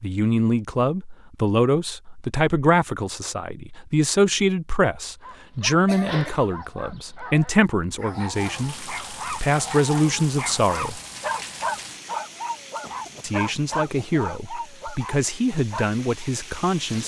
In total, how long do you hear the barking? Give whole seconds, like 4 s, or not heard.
11 s.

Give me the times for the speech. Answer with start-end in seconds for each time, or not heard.
0.0-11.0, 13.2-17.0.